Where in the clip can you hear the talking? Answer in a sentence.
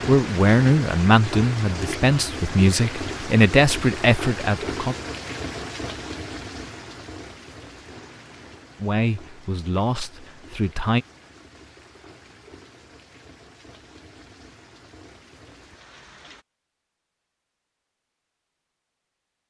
You can hear the talking from 0.1 to 5.0 s and from 8.8 to 11.1 s.